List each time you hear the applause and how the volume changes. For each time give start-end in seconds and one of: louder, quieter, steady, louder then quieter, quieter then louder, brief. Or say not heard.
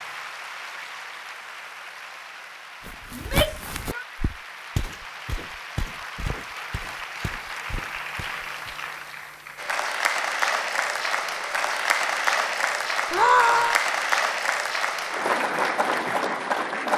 0.0-16.9 louder.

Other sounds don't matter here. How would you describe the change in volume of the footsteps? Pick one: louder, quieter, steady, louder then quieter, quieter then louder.
quieter.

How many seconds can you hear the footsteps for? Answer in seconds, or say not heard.
6 s.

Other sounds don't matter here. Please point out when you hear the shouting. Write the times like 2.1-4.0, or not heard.
3.1-4.0, 13.1-13.8.